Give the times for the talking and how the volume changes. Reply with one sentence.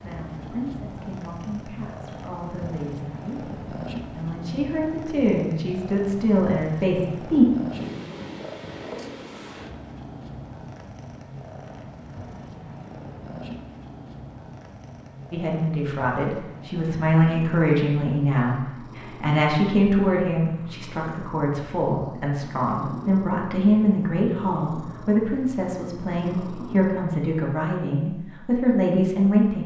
The talking can be heard from 0.0 to 7.5 s, getting louder; and from 15.3 to 29.6 s, at a steady volume.